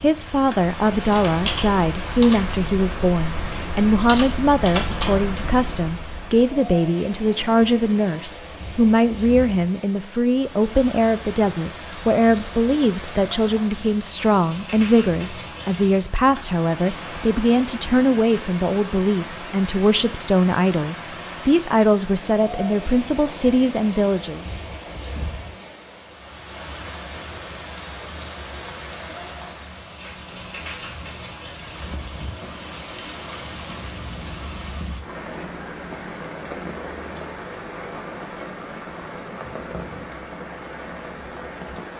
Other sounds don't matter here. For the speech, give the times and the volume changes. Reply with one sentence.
The speech can be heard from 0.0 to 24.4 s, at a steady volume.